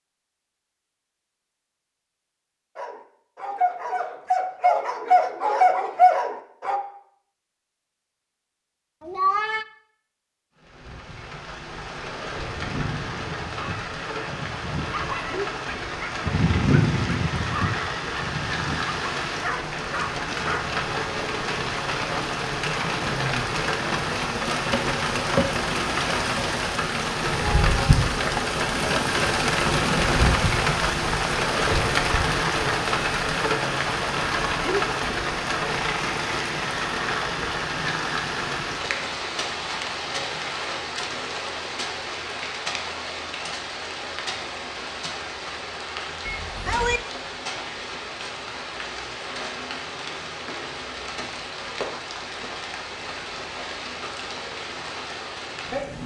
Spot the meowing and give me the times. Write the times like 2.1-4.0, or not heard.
9.0-9.7, 27.3-27.9, 46.2-47.0.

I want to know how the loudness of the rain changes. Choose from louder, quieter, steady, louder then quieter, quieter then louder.
louder then quieter.